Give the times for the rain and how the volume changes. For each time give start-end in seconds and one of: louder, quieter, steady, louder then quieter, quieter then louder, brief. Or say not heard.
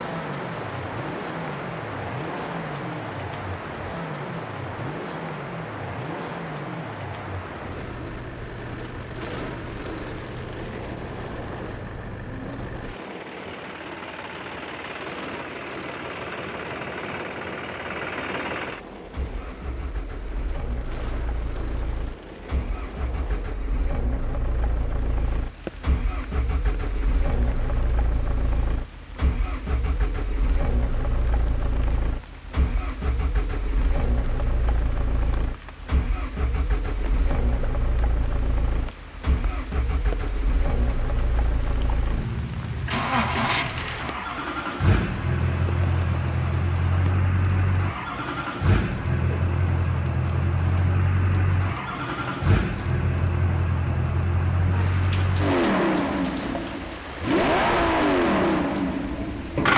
0.0-59.7 quieter then louder.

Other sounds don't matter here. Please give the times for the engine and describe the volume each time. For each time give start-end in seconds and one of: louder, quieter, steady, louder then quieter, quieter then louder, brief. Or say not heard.
0.0-59.7 louder.